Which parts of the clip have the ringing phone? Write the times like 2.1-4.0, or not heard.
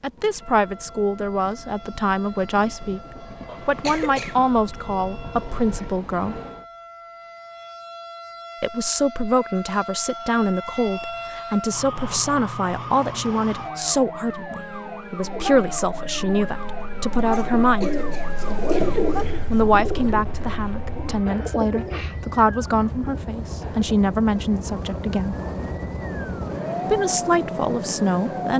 not heard.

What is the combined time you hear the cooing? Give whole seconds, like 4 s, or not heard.
9 s.